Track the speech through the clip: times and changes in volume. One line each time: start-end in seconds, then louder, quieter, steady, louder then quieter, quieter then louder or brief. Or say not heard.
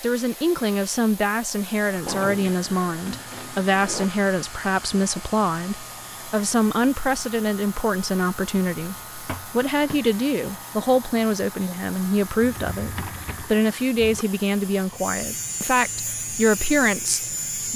0.0-17.7 steady.